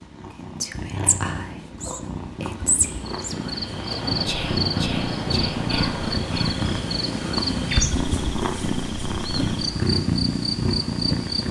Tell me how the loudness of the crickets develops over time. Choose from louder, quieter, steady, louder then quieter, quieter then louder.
quieter then louder.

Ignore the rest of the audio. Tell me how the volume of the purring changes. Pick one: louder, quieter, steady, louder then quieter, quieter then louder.
louder.